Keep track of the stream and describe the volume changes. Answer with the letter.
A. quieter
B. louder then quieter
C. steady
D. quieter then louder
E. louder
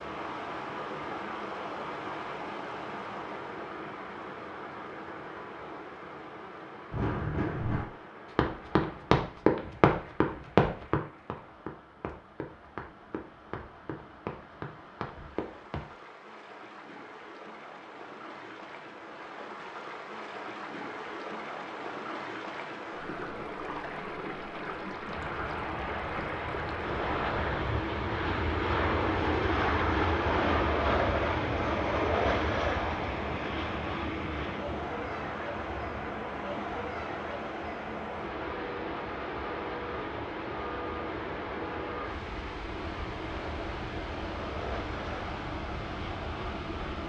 D.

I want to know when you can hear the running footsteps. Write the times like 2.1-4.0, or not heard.
6.9-15.9.